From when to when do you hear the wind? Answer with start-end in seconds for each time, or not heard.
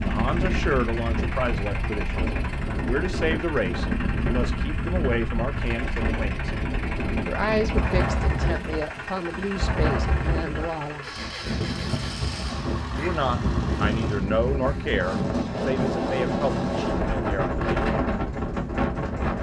0.0-19.3.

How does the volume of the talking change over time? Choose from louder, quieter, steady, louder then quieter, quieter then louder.
steady.